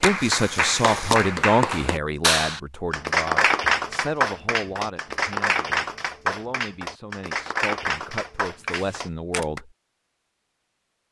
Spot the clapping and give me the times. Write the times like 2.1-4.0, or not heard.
0.0-9.6.